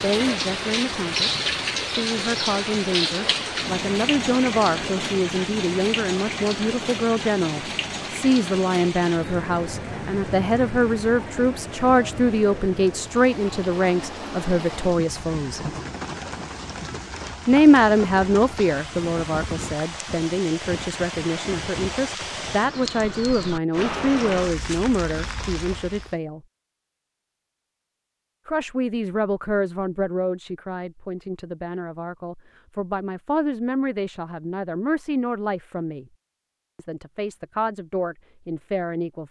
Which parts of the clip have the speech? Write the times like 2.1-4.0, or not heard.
0.0-15.6, 17.4-26.4, 28.4-36.0, 36.8-39.2.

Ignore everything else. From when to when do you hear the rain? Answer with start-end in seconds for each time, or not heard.
0.0-26.1.